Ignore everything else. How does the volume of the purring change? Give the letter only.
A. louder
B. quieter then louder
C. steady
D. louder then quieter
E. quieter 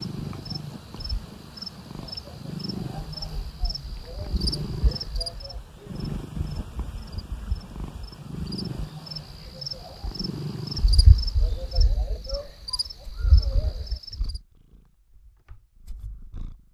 E.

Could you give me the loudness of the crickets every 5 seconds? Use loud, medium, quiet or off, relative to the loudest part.
loud, loud, loud, off.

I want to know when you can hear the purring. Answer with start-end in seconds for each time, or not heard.
0.0-16.7.